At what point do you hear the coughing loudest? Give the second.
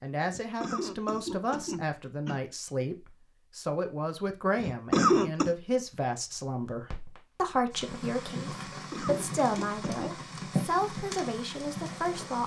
5 s.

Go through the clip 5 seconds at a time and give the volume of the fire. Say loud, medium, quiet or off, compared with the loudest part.
off, loud, loud.